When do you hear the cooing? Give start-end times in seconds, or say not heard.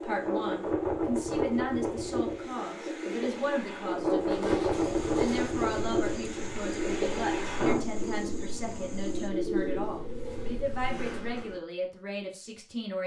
3.1-11.6.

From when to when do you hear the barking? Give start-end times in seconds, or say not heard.
not heard.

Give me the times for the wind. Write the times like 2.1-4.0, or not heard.
0.0-7.8.